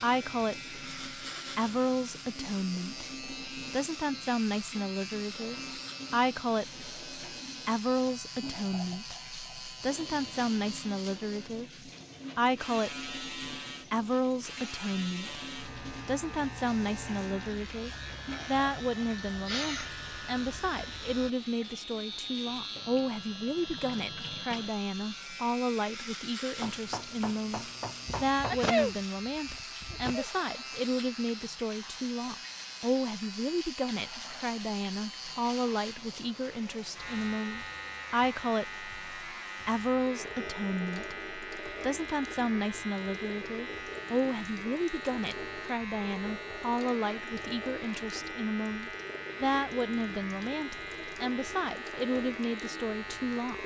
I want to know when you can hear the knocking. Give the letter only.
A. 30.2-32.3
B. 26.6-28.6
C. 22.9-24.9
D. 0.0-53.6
B.